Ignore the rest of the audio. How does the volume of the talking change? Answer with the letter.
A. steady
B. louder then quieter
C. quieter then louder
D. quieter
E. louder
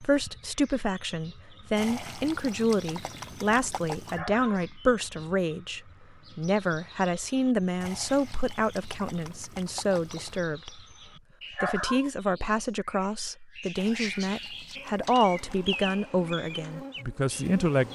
A.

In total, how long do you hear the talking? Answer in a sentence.
The talking can be heard for 17 seconds in total.